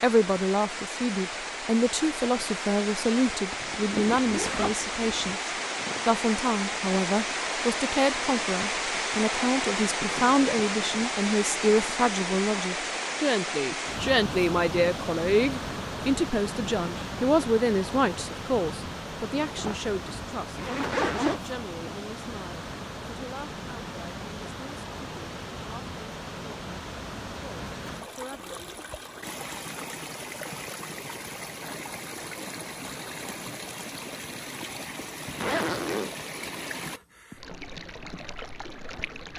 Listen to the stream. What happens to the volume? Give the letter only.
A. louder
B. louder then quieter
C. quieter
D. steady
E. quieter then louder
C.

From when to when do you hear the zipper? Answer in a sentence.
The zipper can be heard from 3.5 to 5.3 s, from 19.6 to 21.4 s and from 35.2 to 36.1 s.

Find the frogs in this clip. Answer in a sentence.
You can't hear the frogs here.